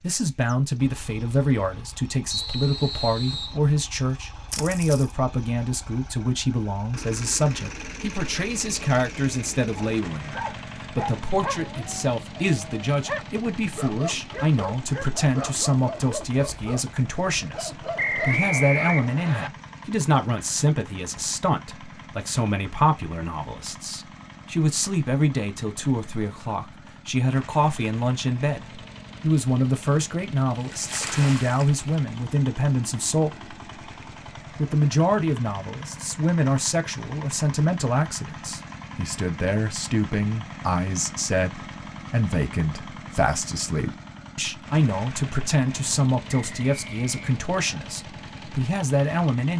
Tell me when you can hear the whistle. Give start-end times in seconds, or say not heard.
2.3-3.6, 17.9-19.5, 46.2-47.8.